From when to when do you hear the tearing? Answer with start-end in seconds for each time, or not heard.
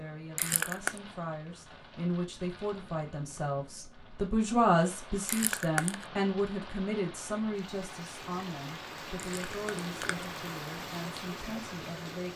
0.3-1.0, 5.2-6.0, 9.2-10.2.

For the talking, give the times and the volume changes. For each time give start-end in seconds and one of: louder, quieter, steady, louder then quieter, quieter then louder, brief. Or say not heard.
0.0-12.3 louder then quieter.